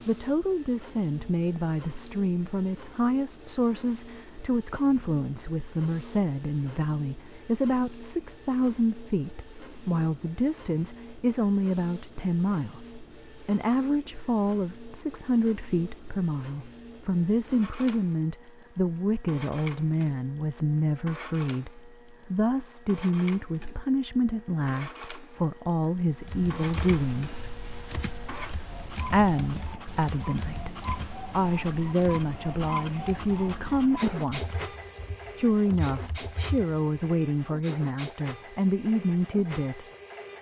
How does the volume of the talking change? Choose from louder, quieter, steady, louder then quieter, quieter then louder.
steady.